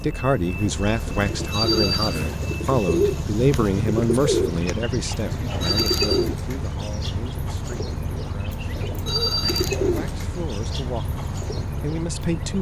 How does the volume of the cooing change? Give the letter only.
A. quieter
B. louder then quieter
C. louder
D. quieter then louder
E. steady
A.